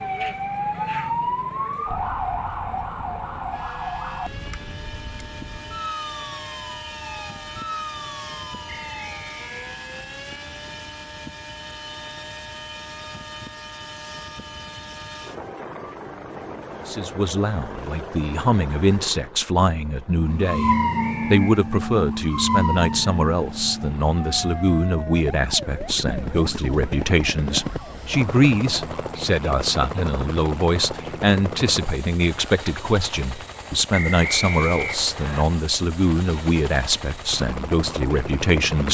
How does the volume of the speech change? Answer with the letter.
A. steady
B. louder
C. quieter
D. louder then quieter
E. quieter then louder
A.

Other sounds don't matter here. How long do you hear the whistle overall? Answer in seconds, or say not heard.
3 s.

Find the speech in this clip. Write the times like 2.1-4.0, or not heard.
16.9-38.8.